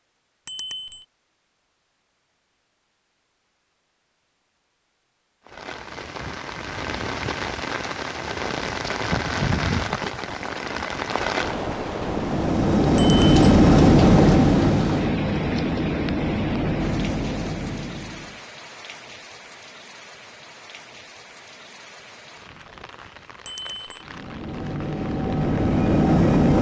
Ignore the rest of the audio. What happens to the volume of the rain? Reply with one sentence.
The volume of the rain goes down.